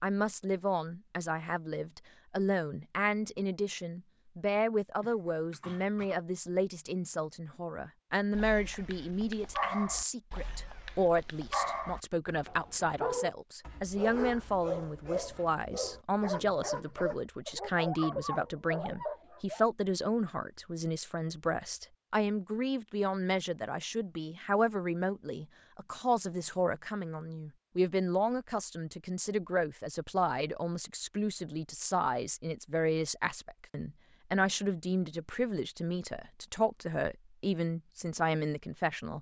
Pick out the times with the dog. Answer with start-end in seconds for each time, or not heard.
8.3-19.6.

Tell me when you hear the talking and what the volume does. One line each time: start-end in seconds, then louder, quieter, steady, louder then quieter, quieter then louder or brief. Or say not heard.
0.0-39.1 steady.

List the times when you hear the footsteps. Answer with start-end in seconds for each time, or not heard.
not heard.